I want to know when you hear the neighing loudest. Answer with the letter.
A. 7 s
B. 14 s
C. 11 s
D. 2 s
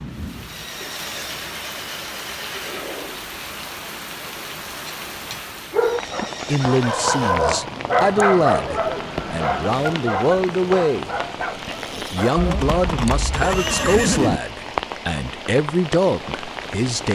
B.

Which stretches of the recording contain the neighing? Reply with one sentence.
The neighing can be heard from 0.5 to 3.1 s, from 5.8 to 7.4 s and from 12.3 to 14.4 s.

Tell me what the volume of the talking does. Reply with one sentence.
The volume of the talking stays about the same.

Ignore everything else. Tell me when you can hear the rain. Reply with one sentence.
You can hear the rain from 0.0 to 17.1 s.